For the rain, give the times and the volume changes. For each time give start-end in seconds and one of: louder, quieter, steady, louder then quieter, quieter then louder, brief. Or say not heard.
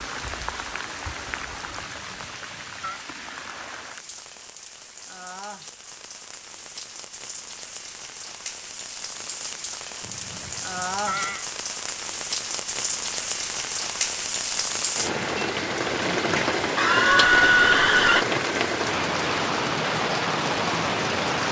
0.0-21.4 louder.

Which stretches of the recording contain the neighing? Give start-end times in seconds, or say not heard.
1.8-3.0, 10.0-11.4, 16.8-18.2.